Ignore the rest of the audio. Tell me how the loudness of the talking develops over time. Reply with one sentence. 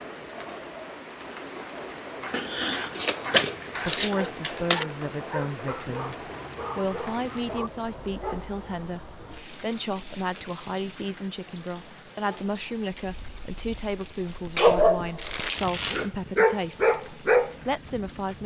The volume of the talking stays about the same.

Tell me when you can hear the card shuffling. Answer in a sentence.
The card shuffling can be heard from 2.3 to 4.8 s and from 14.6 to 16.1 s.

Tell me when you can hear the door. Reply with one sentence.
You can't hear the door here.